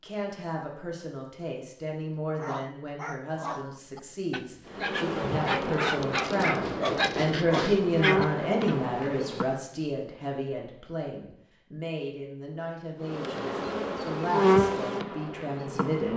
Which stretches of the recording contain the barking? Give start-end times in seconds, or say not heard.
2.4-8.8.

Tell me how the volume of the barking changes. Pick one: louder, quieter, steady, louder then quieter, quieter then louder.
louder.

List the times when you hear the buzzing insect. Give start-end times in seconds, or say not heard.
4.7-9.5, 13.1-16.1.